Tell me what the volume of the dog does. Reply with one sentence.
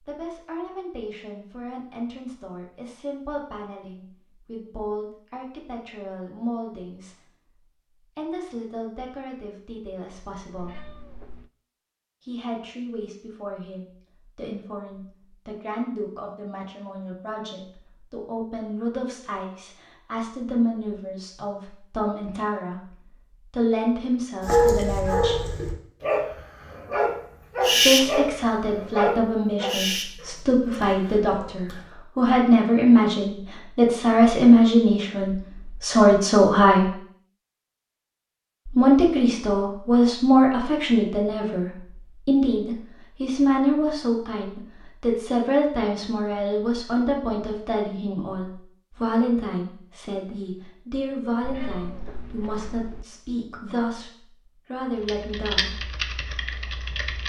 The loudness of the dog goes up, then down.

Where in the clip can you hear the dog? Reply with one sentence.
You can hear the dog from 24.4 to 31.9 s.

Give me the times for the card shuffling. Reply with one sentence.
You can't hear the card shuffling here.